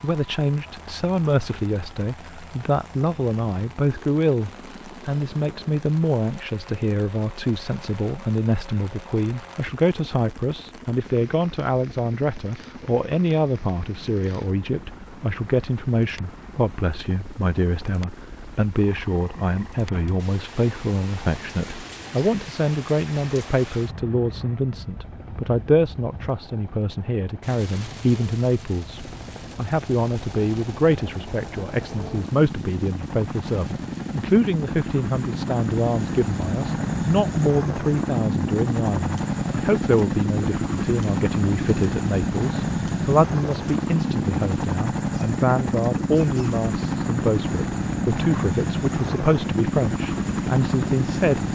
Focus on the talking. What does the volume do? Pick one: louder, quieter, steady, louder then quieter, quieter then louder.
steady.